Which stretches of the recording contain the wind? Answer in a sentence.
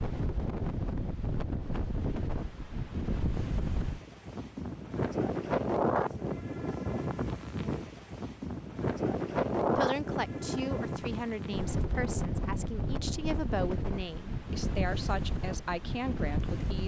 You can hear the wind from 0.0 to 16.8 s.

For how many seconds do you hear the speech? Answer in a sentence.
The speech can be heard for 7 seconds in total.